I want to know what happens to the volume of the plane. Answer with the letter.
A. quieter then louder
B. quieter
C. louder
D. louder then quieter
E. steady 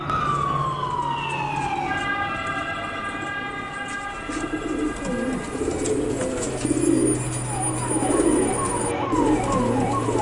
A.